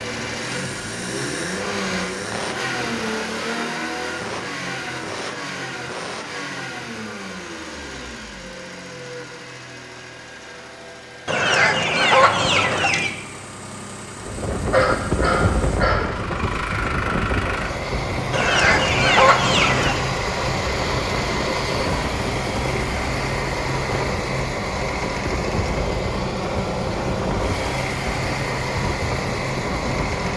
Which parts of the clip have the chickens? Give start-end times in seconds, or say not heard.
11.2-13.1, 18.3-19.9.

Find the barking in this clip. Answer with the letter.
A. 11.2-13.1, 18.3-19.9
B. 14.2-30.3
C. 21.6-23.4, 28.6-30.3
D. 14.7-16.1
D.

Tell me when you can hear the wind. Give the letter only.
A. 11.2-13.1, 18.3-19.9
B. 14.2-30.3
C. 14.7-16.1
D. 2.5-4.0
B.